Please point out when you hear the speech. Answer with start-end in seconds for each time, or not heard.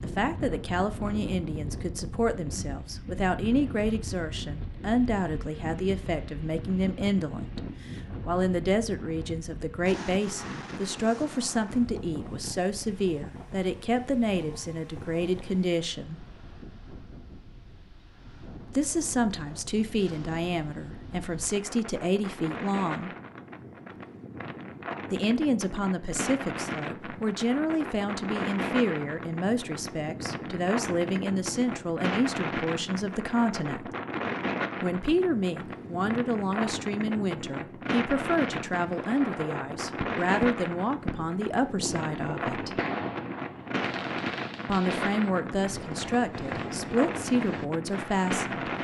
0.0-16.2, 18.7-23.1, 25.1-33.9, 34.8-42.8, 44.6-48.7.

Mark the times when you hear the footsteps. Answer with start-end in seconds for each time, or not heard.
not heard.